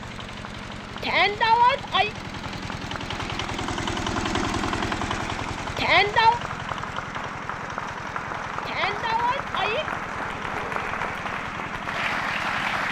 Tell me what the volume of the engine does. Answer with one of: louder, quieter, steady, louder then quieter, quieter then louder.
louder then quieter.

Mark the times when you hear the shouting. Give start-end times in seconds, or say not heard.
1.0-2.1, 5.8-6.4, 8.7-9.8.